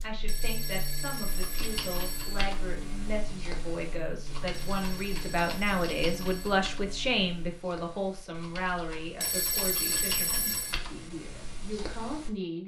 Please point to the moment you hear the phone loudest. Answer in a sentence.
The loudest moment of the phone is at 10 seconds.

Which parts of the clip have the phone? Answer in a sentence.
You can hear the phone from 0.2 to 2.4 s, from 4.5 to 6.6 s and from 9.2 to 10.8 s.